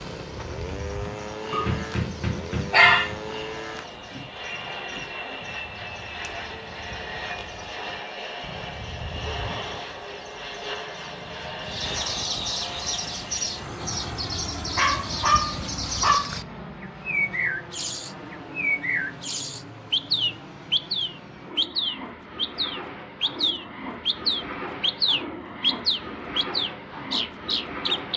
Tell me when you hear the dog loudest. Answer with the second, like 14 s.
3 s.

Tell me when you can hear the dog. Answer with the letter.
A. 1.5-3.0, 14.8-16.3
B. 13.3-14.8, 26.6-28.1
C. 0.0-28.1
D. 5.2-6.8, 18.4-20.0
A.